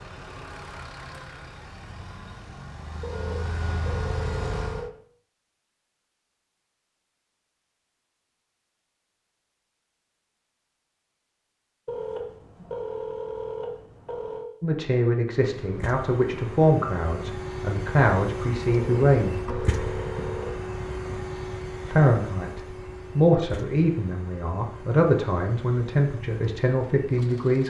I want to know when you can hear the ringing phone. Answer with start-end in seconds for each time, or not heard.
3.0-4.9, 11.8-14.4, 18.6-20.6.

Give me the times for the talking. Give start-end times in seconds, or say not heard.
14.6-19.4, 21.9-27.6.